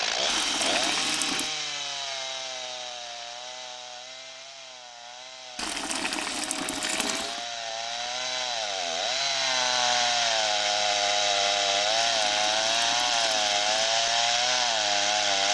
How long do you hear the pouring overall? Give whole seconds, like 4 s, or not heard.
5 s.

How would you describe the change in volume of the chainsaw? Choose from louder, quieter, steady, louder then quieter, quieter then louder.
quieter then louder.